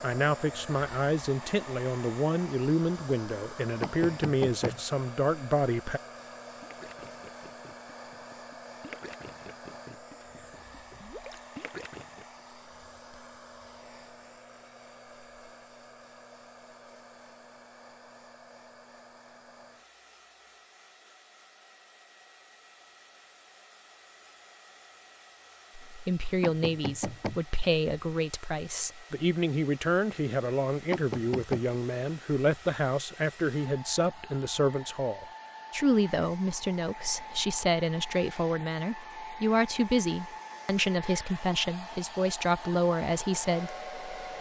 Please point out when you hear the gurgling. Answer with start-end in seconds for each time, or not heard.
6.4-12.2.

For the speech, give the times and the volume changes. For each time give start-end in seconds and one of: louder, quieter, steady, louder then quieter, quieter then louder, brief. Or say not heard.
0.0-6.0 steady
25.8-44.3 steady.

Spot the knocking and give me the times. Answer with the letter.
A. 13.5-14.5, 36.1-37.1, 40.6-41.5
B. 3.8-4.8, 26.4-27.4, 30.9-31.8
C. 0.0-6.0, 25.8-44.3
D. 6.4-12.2
B.